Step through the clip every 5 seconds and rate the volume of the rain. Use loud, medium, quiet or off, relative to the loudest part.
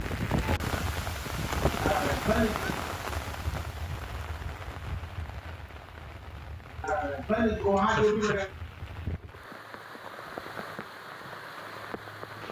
loud, medium, medium.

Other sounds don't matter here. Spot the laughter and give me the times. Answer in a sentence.
You can hear the laughter from 1.8 to 2.6 s and from 6.8 to 8.5 s.